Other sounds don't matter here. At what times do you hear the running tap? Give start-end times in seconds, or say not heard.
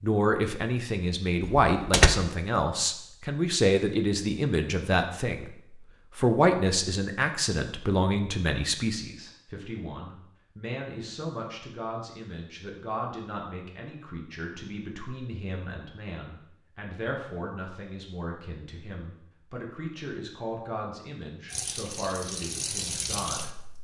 21.5-23.7.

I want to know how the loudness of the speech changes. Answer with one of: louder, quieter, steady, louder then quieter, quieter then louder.
quieter.